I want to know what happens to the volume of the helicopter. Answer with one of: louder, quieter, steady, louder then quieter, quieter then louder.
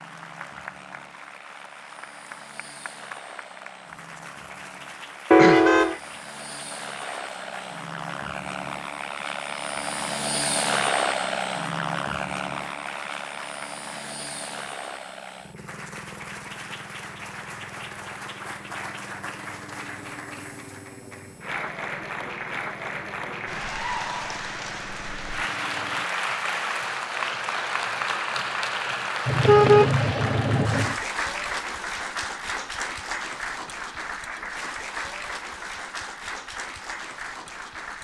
louder then quieter.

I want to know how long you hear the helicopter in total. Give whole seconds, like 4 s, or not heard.
26 s.